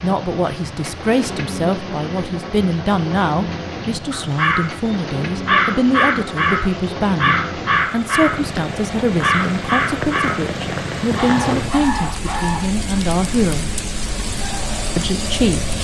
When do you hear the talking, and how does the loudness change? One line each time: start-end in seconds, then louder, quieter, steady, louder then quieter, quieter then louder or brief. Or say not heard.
0.0-13.8 steady
14.9-15.7 brief.